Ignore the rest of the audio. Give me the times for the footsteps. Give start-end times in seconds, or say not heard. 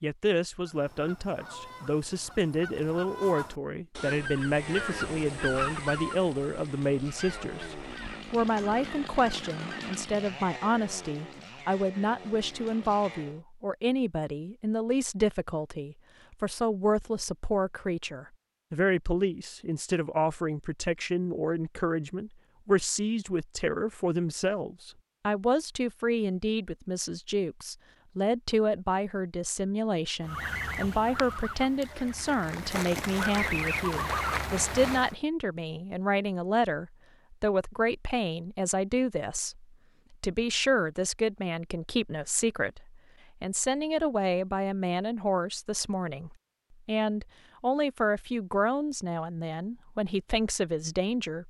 not heard.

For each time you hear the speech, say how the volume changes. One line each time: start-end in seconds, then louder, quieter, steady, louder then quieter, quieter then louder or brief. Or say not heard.
0.0-51.4 steady.